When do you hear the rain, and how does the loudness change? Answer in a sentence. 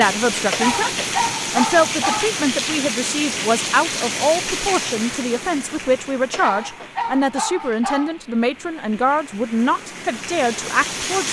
The rain can be heard from 0.0 to 11.2 s, getting quieter then louder.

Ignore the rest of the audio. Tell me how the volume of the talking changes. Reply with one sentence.
The volume of the talking stays about the same.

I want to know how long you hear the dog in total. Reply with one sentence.
You can hear the dog for 4 seconds altogether.